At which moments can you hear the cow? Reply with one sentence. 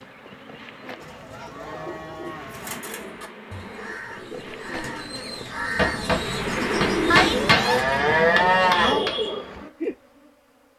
The cow can be heard from 1.0 to 2.9 s and from 7.1 to 9.1 s.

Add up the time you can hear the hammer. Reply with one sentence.
The hammer can be heard for 4 seconds in total.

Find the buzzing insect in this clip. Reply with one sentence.
You can hear the buzzing insect from 0.0 to 10.7 s.